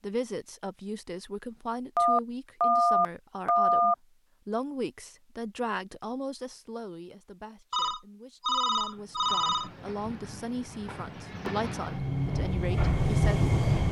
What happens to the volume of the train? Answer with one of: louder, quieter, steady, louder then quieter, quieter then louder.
louder.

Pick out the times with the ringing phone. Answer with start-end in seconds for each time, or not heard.
1.9-4.0, 7.7-9.7.